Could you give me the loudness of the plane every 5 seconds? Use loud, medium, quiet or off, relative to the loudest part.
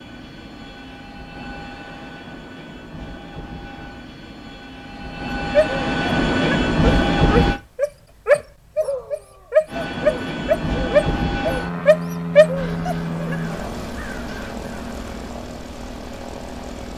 quiet, loud, medium, quiet.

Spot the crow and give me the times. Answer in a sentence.
You can hear the crow from 12.6 to 15.3 s.